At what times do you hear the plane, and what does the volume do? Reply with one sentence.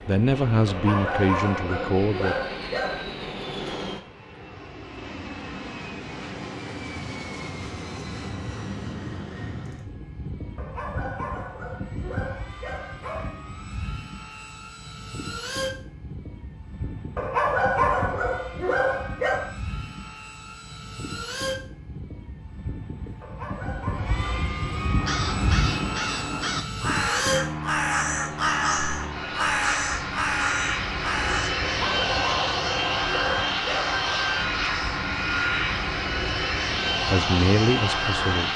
The plane can be heard from 0.0 to 38.5 s, getting louder.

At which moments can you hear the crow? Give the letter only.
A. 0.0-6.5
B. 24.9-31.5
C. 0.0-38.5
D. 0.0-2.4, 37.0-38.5
B.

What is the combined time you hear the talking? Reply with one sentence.
You can hear the talking for 4 seconds altogether.